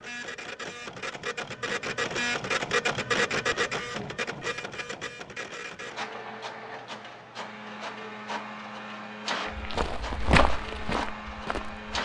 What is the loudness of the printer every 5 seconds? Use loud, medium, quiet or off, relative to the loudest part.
loud, medium, medium.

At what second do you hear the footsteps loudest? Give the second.
10 s.